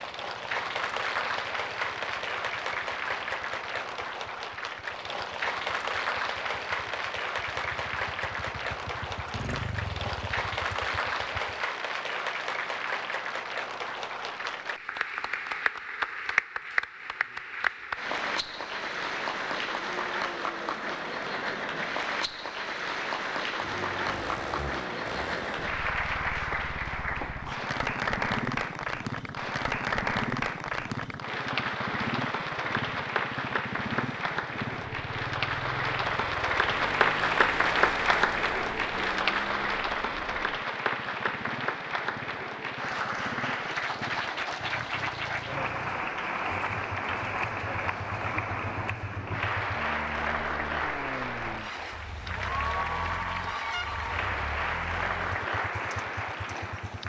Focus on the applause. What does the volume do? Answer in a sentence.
The loudness of the applause stays about the same.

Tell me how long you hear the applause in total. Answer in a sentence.
You can hear the applause for 57 seconds altogether.